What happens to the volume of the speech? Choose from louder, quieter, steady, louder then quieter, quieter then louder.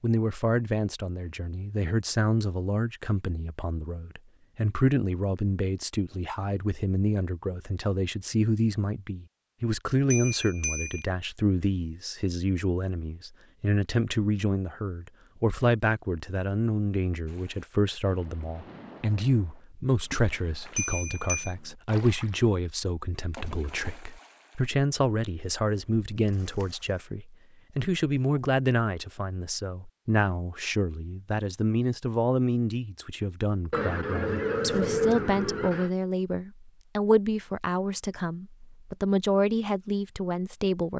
steady.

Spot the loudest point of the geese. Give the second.
35 s.